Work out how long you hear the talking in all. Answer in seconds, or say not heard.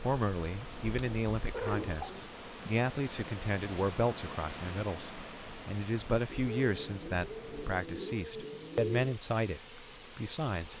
11 s.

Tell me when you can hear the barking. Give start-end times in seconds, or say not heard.
not heard.